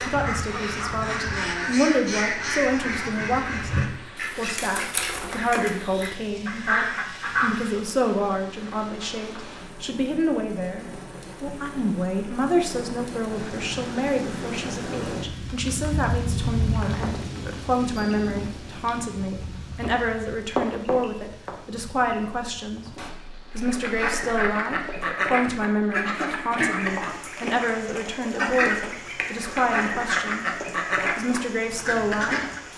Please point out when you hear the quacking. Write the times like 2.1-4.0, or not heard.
0.0-7.8, 23.5-32.6.